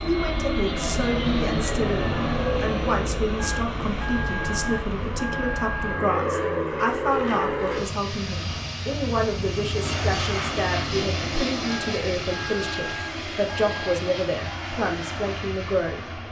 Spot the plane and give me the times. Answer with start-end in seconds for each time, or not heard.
0.0-16.2.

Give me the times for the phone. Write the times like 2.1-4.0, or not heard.
3.4-6.2, 11.7-14.0.